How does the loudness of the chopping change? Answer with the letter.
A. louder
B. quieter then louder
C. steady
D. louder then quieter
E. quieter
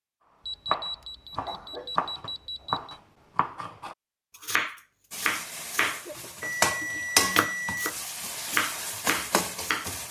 B.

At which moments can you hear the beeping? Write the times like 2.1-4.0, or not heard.
0.5-3.0, 6.4-7.9.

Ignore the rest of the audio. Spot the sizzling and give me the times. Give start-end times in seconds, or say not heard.
5.1-10.0.